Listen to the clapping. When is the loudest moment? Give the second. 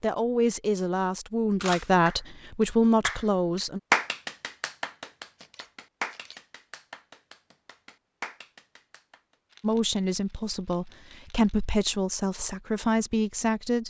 4 s.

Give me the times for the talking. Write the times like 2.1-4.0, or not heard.
0.0-3.8, 9.6-13.8.